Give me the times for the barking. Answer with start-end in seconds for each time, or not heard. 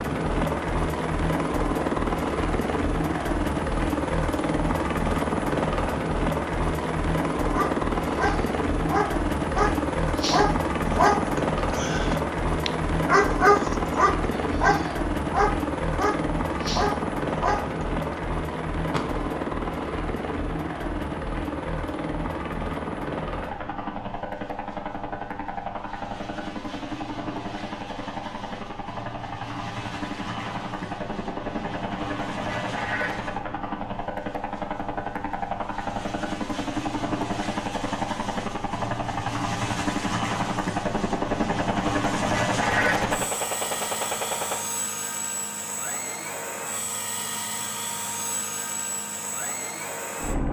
7.5-17.7.